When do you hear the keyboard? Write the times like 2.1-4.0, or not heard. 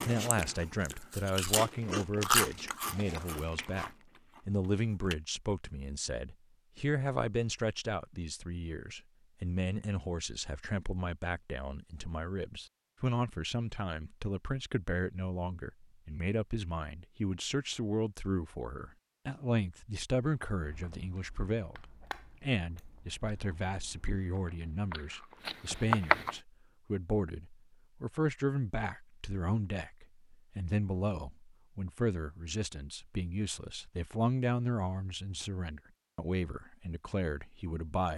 not heard.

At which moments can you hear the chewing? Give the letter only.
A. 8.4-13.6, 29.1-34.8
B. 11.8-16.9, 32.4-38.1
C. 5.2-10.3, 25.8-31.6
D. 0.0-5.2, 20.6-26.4
D.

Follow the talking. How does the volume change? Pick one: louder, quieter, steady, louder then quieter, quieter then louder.
steady.